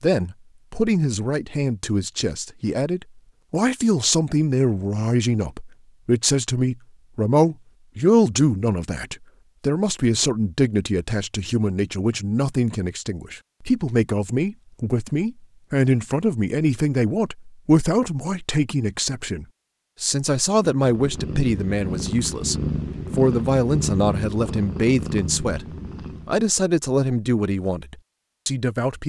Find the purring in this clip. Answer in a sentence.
You can hear the purring from 20.8 to 26.4 s.